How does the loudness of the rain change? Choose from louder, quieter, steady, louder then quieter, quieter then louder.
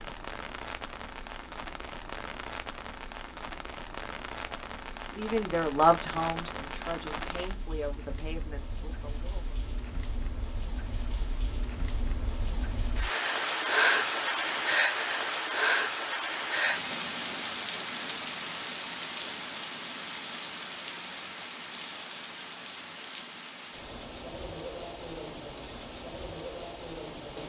louder then quieter.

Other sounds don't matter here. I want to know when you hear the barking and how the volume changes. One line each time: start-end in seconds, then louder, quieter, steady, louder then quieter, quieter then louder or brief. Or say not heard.
not heard.